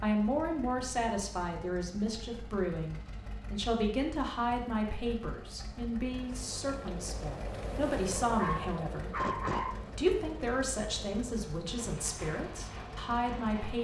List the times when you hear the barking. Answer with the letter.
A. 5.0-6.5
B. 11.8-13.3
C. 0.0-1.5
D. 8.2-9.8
D.